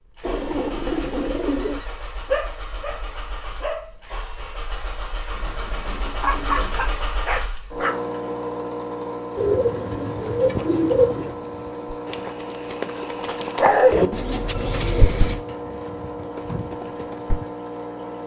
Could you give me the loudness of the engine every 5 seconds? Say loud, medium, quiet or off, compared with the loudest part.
medium, loud, loud, loud.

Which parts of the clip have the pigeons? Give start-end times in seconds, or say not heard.
0.2-1.8, 5.3-7.0, 9.3-11.3, 13.9-15.4.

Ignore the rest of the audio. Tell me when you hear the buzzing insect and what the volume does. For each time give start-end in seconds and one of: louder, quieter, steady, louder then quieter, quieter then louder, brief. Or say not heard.
not heard.